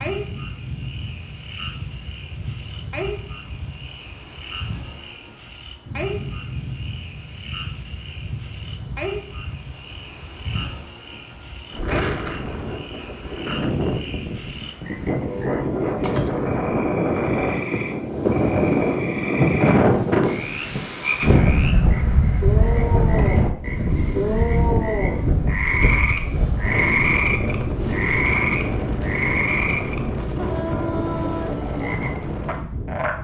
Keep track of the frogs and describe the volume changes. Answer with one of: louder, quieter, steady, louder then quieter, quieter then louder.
louder.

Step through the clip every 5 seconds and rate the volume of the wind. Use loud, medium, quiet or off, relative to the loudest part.
quiet, quiet, medium, loud, loud, medium, medium.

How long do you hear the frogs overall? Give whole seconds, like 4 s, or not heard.
33 s.